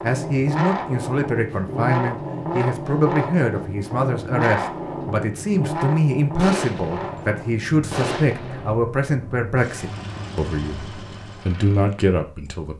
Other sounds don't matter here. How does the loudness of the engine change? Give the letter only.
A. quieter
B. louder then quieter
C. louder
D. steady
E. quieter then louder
A.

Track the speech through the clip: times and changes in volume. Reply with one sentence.
You can hear the speech from 0.0 to 12.7 s, at a steady volume.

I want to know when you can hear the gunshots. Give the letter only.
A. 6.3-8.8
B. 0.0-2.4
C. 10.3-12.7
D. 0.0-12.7
A.